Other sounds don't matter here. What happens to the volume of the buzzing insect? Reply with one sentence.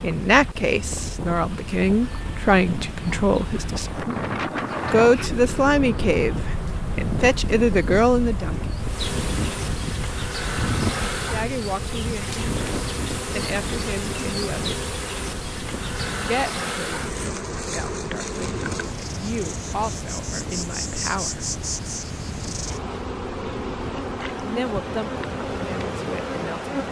The loudness of the buzzing insect goes up.